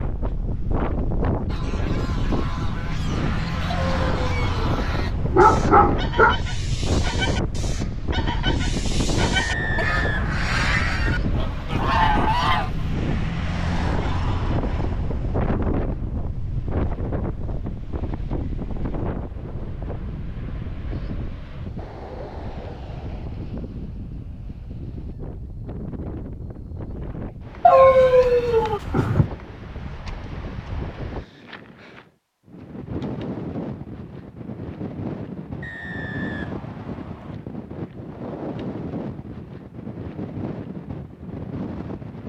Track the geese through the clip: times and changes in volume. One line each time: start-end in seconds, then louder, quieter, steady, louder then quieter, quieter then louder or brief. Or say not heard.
1.4-12.7 louder.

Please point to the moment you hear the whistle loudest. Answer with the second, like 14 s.
10 s.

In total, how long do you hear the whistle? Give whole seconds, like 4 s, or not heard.
3 s.